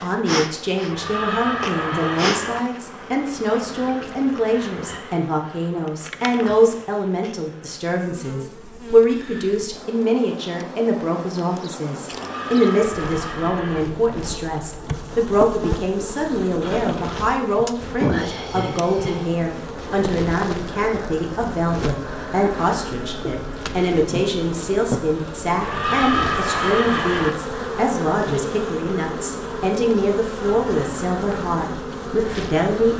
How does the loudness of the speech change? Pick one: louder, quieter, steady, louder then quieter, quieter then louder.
steady.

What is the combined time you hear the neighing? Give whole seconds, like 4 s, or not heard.
5 s.